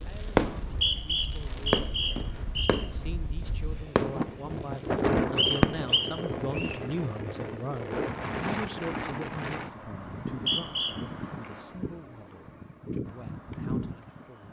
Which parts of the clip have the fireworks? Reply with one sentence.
You can hear the fireworks from 0.0 to 5.8 s.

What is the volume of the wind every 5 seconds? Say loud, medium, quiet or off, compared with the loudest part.
medium, loud, medium.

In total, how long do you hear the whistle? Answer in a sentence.
The whistle can be heard for 4 seconds in total.